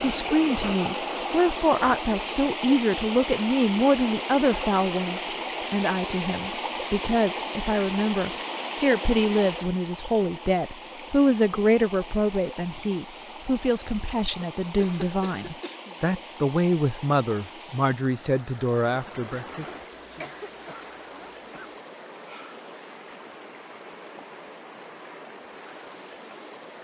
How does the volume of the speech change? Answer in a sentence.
The loudness of the speech stays about the same.